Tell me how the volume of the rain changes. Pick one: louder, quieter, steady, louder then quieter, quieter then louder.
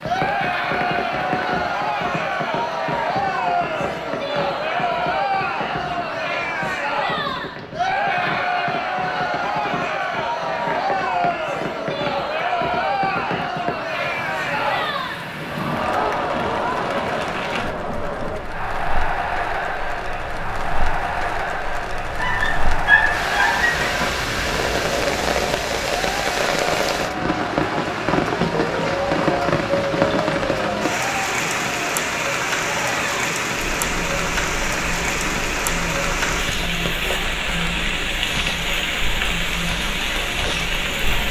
louder.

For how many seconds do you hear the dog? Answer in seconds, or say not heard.
2 s.